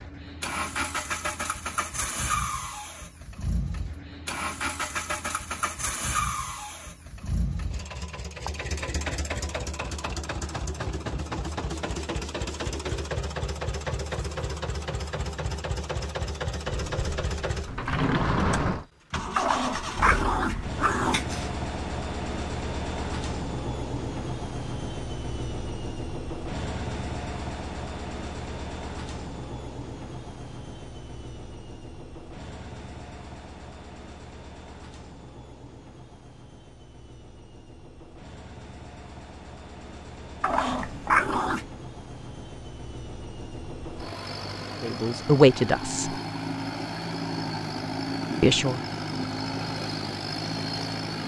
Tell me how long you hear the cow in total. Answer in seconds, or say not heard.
2 s.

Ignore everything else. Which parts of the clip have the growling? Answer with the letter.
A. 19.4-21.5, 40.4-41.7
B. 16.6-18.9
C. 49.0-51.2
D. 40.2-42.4
A.